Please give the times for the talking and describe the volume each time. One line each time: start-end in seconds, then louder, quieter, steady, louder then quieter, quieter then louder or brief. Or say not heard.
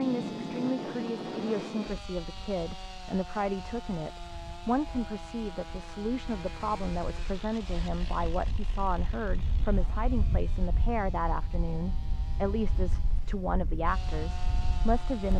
0.0-15.3 steady.